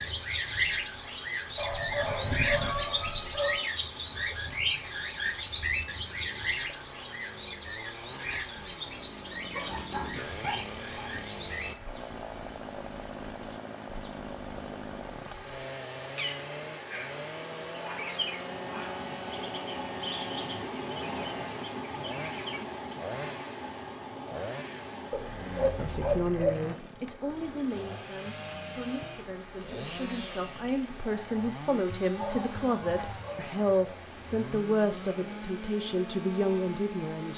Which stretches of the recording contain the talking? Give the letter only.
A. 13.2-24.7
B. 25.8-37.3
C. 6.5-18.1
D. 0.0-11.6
B.